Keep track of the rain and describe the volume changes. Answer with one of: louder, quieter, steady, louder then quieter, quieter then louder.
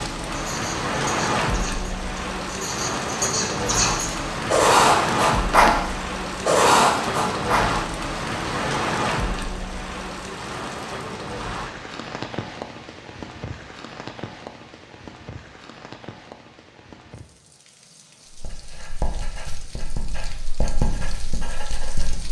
quieter.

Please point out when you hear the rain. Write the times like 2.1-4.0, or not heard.
0.0-22.2.